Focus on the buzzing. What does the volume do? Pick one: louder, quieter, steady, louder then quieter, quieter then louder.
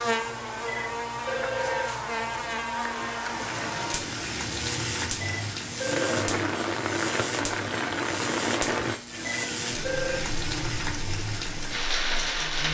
quieter.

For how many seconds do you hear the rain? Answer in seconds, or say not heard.
10 s.